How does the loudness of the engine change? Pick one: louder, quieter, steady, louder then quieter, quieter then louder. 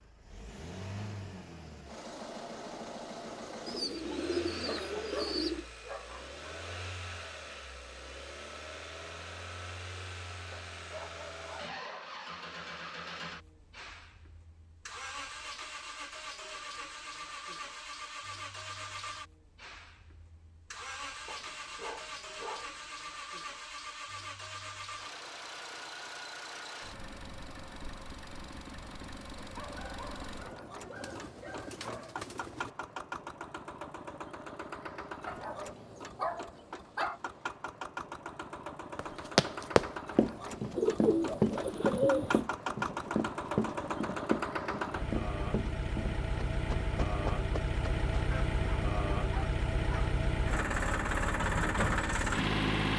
louder.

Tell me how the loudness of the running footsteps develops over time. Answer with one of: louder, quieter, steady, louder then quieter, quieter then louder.
quieter.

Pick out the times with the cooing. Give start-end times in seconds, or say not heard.
3.6-5.7, 30.9-32.7, 40.8-42.4.